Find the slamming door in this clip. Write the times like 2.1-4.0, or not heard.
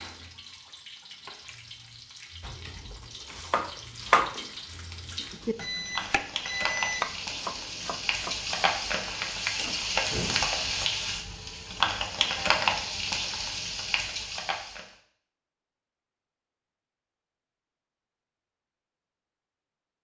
not heard.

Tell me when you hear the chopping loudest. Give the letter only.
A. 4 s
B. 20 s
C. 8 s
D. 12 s
A.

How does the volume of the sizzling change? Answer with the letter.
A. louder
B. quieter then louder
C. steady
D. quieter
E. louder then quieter
A.